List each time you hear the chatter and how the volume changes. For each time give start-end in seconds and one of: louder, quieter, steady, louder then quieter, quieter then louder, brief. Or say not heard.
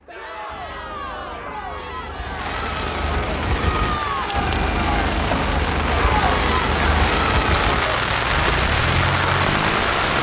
0.1-8.0 louder.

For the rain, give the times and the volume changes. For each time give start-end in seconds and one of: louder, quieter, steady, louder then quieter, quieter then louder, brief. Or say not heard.
2.3-10.1 louder.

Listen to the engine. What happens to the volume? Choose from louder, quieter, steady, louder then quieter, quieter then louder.
louder.